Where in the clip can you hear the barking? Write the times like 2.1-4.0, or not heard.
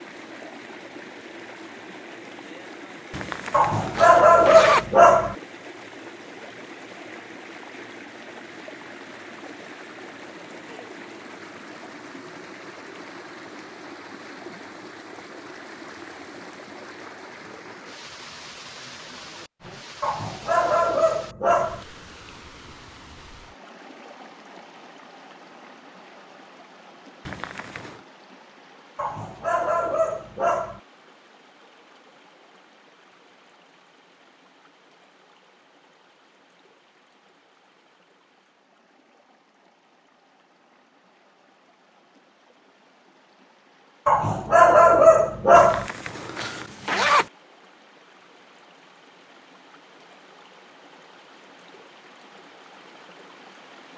3.5-5.3, 20.0-21.9, 28.9-30.8, 44.0-45.9.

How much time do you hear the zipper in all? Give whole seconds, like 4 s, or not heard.
4 s.